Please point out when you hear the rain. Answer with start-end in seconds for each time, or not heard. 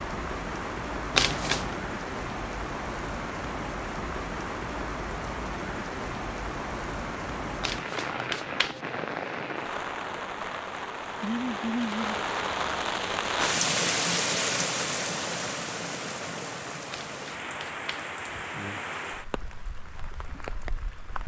0.0-21.2.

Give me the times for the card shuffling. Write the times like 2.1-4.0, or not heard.
1.1-1.8, 7.6-8.8, 16.9-18.1.